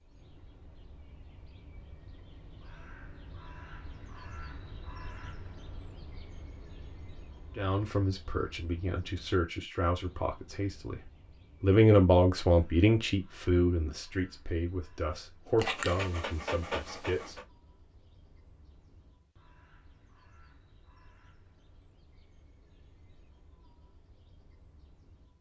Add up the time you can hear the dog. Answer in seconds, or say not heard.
2 s.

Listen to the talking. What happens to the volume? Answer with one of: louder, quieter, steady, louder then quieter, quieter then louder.
louder then quieter.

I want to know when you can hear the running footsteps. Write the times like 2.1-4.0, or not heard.
not heard.